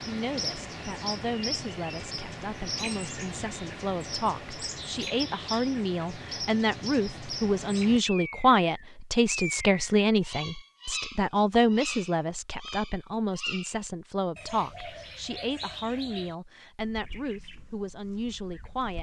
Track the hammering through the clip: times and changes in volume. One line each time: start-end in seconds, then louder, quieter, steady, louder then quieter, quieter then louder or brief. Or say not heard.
not heard.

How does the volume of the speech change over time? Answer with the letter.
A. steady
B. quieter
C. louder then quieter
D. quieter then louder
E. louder
C.